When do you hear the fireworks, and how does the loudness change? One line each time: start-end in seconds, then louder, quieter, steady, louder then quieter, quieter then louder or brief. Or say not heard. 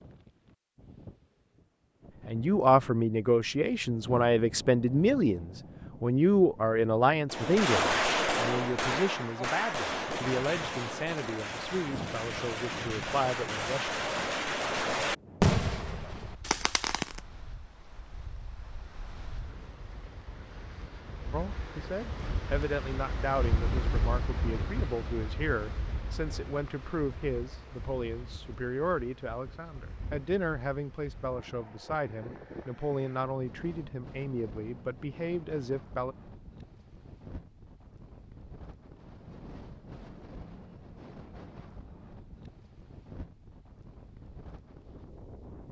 7.2-17.2 quieter then louder.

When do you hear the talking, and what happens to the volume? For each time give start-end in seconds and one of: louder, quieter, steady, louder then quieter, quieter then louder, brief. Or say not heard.
2.2-13.9 quieter
21.3-36.1 steady.